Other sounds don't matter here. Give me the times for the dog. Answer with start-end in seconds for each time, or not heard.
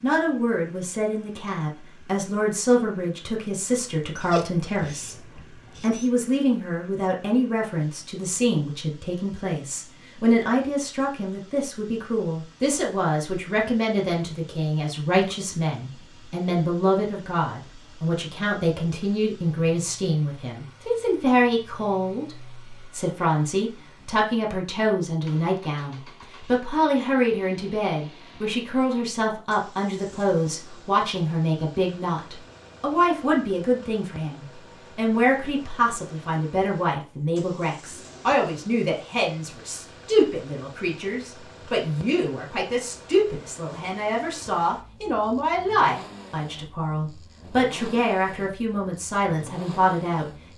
4.2-6.0.